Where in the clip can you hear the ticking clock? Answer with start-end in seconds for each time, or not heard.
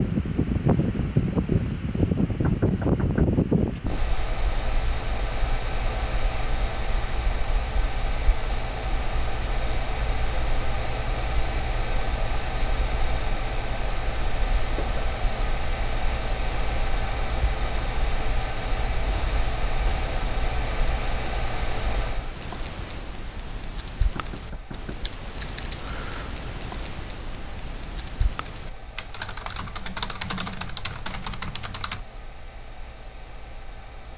not heard.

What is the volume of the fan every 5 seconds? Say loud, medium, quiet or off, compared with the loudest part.
loud, medium, medium, medium, medium, quiet, quiet.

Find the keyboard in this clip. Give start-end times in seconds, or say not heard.
22.1-32.0.